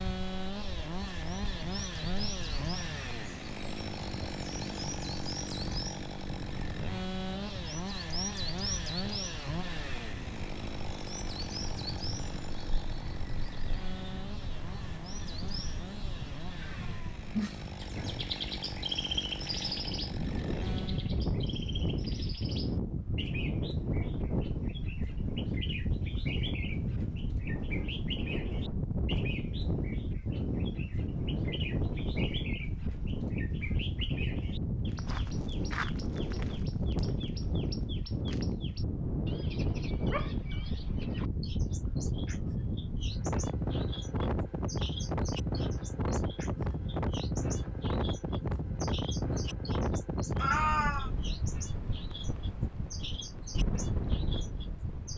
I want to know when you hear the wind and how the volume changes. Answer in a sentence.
You can hear the wind from 0.0 to 55.1 s, getting louder.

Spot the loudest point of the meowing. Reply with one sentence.
The volume of the meowing peaks at 51 seconds.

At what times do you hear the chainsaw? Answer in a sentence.
You can hear the chainsaw from 0.0 to 21.1 s.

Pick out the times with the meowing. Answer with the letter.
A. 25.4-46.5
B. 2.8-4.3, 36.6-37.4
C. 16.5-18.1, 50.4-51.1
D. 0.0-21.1
C.